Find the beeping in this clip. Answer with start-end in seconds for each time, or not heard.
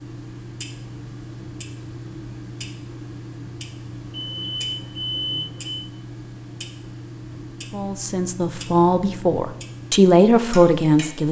4.0-5.8.